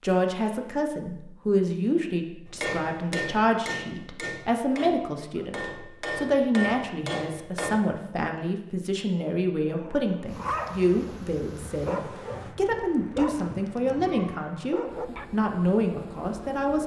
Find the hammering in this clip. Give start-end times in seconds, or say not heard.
2.5-7.8.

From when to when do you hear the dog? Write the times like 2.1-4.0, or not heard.
9.7-15.2.